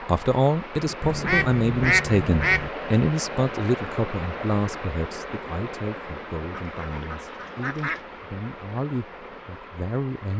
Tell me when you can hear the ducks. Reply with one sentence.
The ducks can be heard from 1.0 to 2.7 s and from 6.5 to 8.0 s.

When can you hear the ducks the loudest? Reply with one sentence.
The volume of the ducks peaks at 2 seconds.